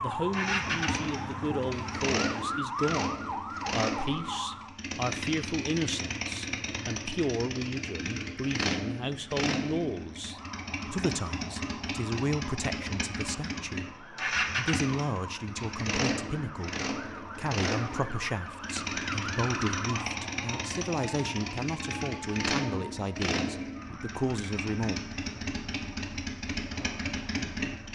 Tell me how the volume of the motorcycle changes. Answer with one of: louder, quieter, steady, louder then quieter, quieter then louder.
steady.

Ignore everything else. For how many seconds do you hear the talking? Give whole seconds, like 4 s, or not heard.
25 s.